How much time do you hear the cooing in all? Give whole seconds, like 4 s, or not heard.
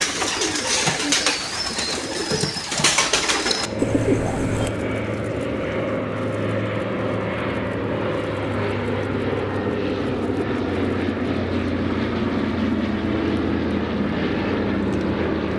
5 s.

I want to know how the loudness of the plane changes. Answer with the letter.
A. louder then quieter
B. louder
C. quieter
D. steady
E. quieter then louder
D.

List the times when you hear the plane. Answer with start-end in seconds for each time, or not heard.
3.5-15.5.